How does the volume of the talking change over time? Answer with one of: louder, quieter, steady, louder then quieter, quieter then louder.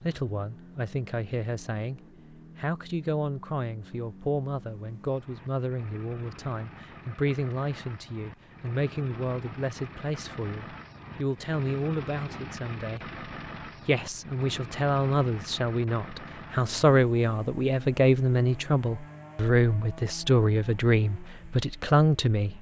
louder.